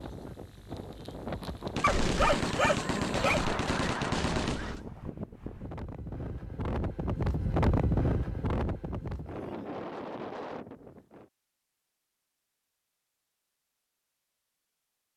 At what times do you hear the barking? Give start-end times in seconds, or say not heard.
1.8-3.5.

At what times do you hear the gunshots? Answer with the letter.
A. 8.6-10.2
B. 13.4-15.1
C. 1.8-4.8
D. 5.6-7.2
C.